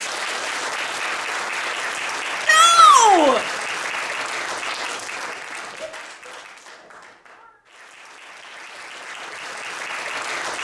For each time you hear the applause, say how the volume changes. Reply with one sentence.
You can hear the applause from 0.0 to 10.5 s, getting quieter then louder.